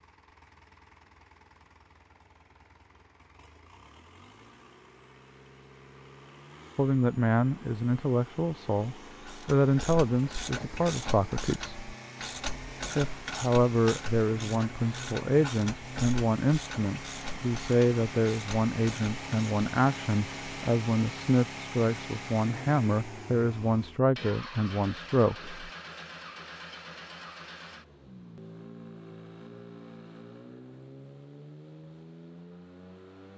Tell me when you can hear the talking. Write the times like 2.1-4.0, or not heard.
6.8-11.8, 12.9-25.7.